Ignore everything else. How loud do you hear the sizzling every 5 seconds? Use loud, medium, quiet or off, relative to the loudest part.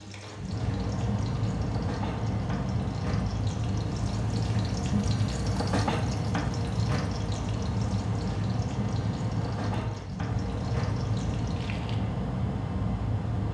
loud, loud, medium.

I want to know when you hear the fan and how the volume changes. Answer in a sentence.
You can hear the fan from 0.0 to 13.4 s, at a steady volume.